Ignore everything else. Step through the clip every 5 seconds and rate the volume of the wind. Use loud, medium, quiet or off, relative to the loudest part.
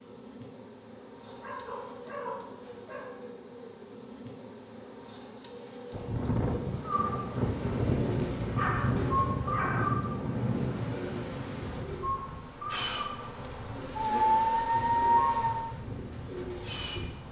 off, loud, medium, quiet.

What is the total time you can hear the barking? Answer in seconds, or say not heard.
5 s.